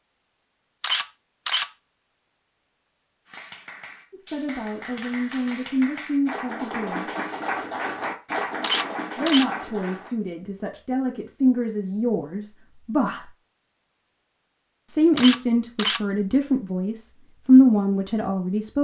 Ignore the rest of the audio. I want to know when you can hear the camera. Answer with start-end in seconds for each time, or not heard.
0.8-1.6, 8.6-9.4, 15.2-16.0.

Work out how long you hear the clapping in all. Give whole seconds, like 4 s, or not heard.
7 s.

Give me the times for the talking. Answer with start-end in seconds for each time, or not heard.
4.1-7.0, 9.2-13.3, 14.8-18.7.